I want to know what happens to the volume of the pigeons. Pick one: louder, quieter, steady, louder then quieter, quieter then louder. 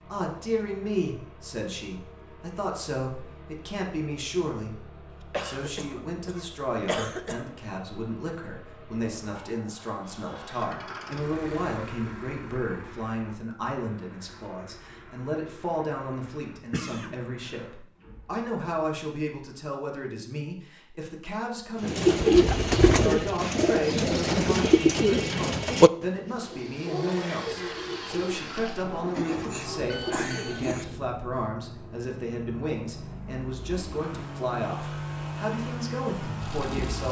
quieter.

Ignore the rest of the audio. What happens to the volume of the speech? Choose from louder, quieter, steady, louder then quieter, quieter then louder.
steady.